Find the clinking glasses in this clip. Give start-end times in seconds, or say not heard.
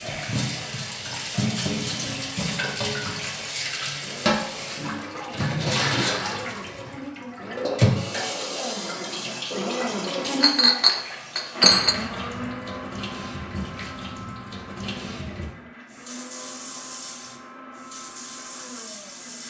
10.4-11.9.